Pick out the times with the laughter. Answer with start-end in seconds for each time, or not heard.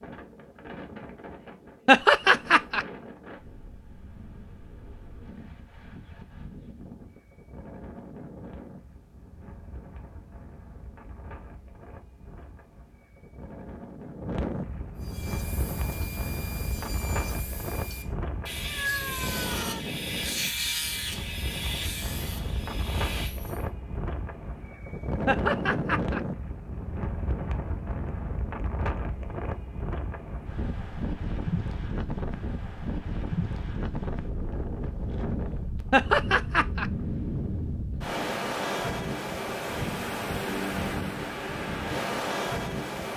1.9-2.9, 25.2-26.2, 35.9-36.9.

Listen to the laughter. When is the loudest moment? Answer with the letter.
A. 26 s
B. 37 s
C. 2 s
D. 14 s
C.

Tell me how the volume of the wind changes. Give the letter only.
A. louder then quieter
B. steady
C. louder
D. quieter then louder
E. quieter
C.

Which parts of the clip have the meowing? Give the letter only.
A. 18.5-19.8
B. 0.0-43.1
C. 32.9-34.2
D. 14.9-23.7
A.